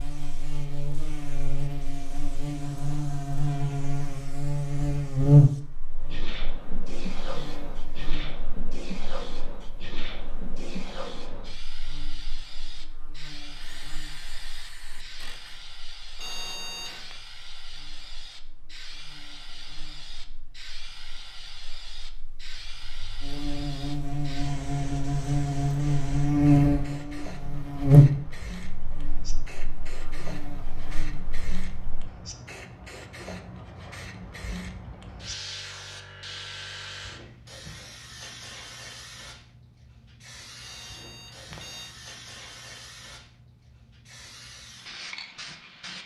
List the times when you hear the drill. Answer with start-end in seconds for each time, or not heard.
13.4-15.6.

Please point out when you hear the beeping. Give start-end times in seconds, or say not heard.
16.1-17.1, 40.6-42.0.